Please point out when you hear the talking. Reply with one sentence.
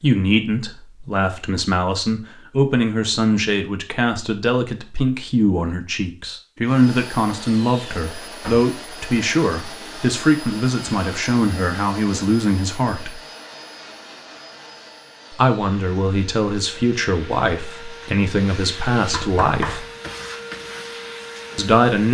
The talking can be heard from 0.0 to 13.2 s, from 15.3 to 19.9 s and from 21.6 to 22.0 s.